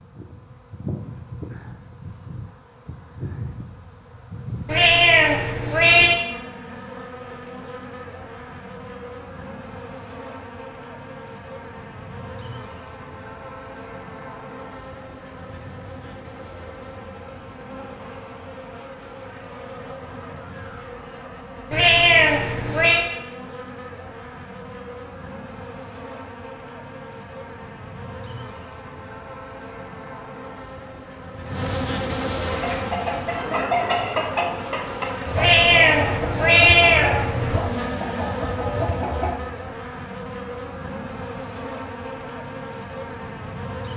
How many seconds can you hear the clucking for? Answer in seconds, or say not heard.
7 s.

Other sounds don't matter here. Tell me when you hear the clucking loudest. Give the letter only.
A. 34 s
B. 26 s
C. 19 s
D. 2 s
A.